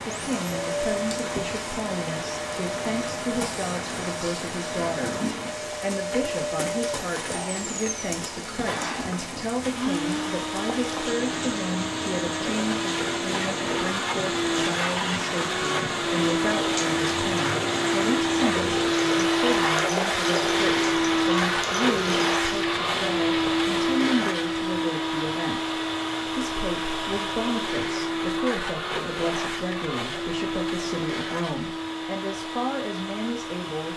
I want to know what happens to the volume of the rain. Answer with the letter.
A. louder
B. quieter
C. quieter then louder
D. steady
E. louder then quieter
D.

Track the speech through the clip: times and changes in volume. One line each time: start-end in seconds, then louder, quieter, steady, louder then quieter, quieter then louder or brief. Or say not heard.
0.1-5.2 steady
5.8-33.9 steady.